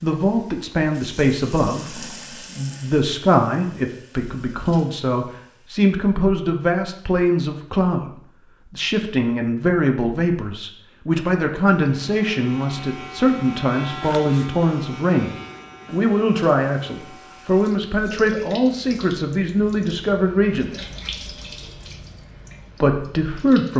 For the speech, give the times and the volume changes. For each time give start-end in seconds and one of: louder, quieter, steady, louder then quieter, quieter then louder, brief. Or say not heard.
0.0-20.9 steady
22.8-23.7 brief.